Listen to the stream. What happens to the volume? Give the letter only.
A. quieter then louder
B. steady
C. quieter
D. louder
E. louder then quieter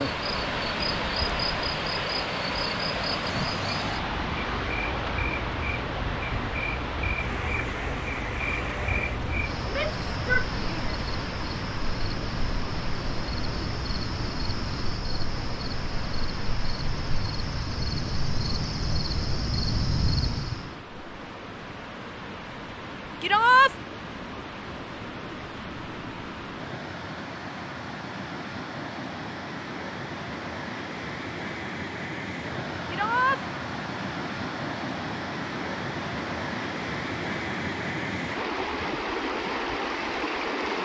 A.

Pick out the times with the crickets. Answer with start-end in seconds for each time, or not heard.
0.0-20.7.